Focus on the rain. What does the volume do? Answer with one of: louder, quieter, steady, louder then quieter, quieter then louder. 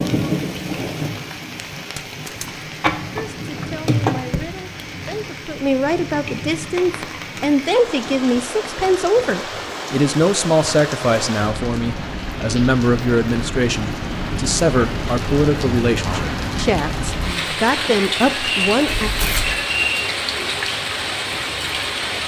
louder.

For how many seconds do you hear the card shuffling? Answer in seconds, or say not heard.
3 s.